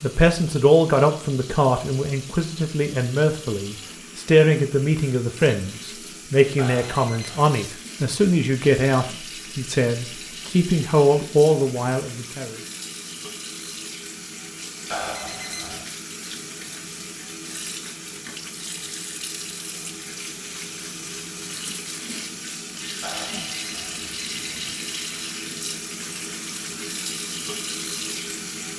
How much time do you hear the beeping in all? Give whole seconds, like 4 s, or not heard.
4 s.